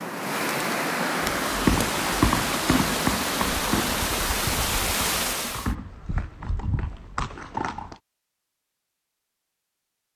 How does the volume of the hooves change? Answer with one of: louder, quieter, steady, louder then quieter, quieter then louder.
quieter.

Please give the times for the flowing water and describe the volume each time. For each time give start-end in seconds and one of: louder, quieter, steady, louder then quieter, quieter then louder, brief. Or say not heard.
0.0-5.8 steady.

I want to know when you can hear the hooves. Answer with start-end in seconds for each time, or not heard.
1.2-8.0.